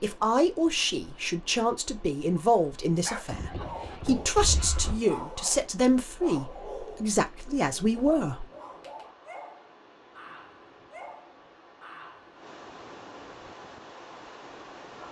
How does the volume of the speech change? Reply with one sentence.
The loudness of the speech stays about the same.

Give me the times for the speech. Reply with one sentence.
You can hear the speech from 0.0 to 8.4 s.